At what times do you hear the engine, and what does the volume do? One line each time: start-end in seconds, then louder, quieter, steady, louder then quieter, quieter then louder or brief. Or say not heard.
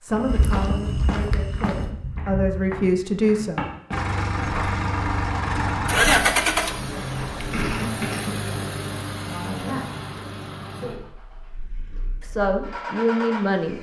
3.9-13.7 quieter.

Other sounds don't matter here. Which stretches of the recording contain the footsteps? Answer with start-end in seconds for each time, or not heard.
0.1-7.8.